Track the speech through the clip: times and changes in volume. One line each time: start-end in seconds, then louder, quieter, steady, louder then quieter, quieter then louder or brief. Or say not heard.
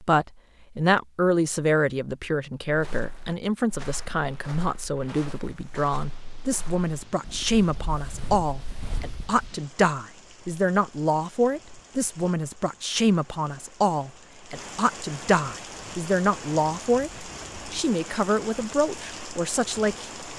0.0-20.1 steady.